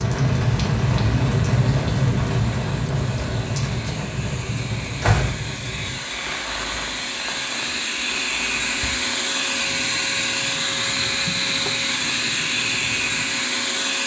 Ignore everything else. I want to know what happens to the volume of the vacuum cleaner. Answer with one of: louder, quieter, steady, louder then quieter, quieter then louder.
louder.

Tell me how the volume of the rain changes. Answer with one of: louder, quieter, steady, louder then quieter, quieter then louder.
quieter.